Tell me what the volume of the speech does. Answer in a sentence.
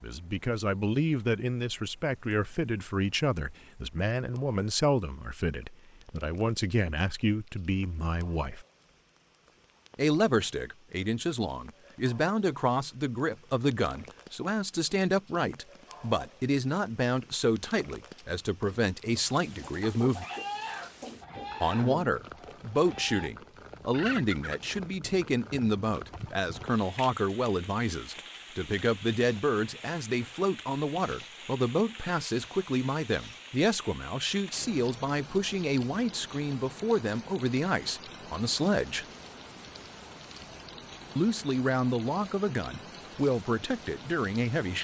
The volume of the speech stays about the same.